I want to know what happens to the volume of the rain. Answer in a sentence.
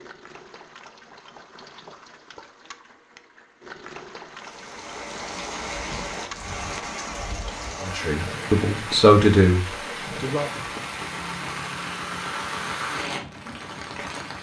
The loudness of the rain stays about the same.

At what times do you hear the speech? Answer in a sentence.
The speech can be heard from 7.8 to 10.4 s.